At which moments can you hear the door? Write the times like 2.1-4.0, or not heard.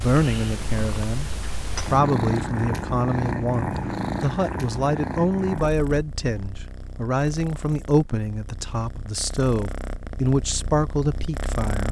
not heard.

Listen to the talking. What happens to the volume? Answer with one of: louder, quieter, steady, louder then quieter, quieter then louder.
steady.